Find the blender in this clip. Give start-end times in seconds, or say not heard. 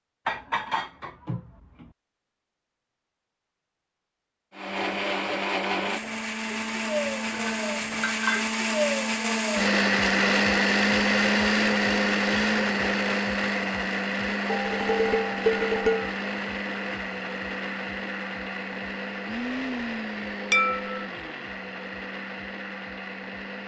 4.5-23.6.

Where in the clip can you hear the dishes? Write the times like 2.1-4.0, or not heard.
0.2-1.9, 6.0-8.5, 14.4-16.1, 20.5-21.1.